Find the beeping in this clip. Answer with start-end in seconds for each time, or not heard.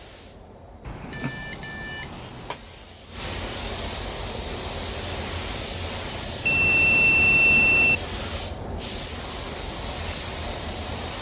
0.8-2.6, 6.5-8.0.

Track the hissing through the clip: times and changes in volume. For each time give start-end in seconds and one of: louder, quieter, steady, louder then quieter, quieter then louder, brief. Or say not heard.
0.0-11.1 louder.